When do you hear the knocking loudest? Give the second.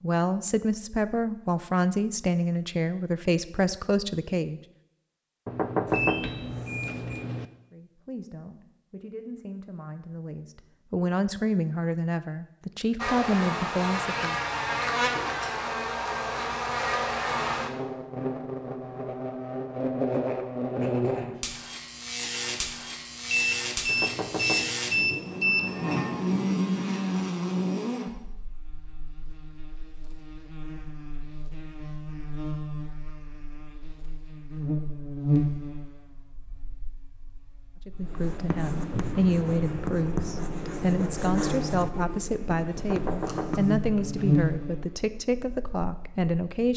6 s.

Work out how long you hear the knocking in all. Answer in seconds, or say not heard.
5 s.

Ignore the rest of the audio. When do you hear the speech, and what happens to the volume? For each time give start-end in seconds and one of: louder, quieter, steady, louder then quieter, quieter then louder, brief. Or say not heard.
0.0-4.6 steady
7.7-14.3 louder
37.9-46.7 steady.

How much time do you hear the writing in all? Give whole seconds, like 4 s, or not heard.
6 s.